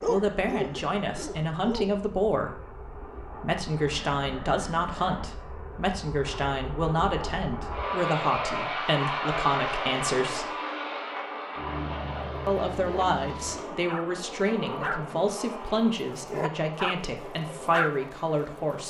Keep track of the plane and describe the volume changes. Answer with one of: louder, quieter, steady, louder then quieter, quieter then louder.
louder then quieter.